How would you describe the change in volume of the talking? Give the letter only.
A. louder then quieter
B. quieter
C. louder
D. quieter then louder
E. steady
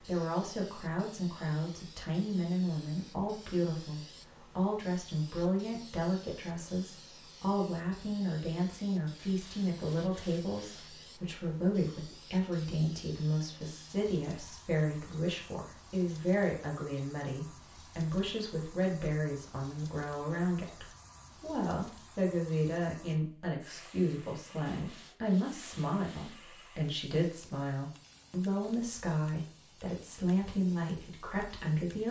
E.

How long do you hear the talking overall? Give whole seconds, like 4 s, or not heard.
32 s.